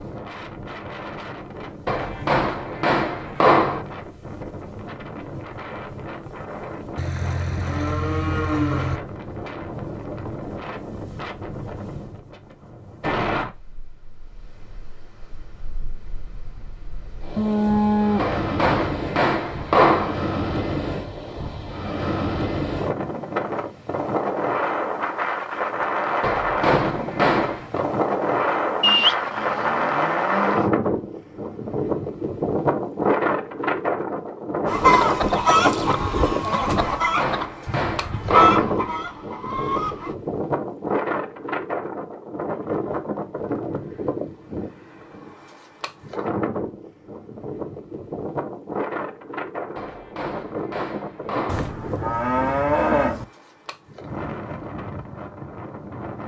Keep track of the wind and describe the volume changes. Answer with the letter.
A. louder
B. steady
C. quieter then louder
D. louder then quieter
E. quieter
D.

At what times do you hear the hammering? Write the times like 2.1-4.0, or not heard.
1.9-3.9, 18.1-20.1, 26.2-27.9, 36.8-38.8, 49.8-51.7.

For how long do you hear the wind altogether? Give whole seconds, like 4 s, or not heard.
56 s.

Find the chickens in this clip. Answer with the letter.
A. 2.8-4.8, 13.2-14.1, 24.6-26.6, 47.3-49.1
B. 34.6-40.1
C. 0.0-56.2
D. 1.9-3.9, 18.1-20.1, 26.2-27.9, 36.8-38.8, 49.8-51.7
B.